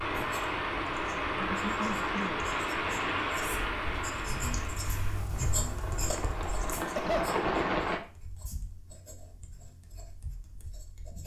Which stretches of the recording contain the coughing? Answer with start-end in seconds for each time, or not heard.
1.4-2.5, 6.8-7.3.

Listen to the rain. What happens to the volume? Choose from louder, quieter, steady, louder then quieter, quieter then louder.
quieter then louder.